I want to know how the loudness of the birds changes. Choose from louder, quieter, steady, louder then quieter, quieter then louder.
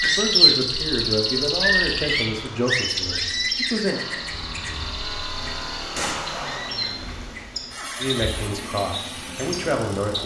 quieter.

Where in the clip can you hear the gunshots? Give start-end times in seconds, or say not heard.
6.0-6.8.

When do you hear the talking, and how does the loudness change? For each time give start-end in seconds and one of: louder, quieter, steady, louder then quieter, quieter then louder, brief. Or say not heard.
0.0-4.0 quieter
8.0-10.2 brief.